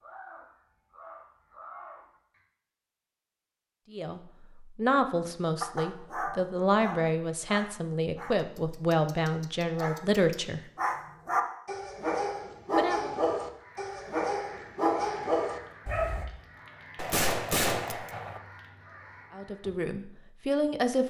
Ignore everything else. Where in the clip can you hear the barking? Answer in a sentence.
The barking can be heard from 5.6 to 16.2 s.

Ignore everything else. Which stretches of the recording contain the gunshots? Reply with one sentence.
The gunshots can be heard from 16.9 to 18.4 s.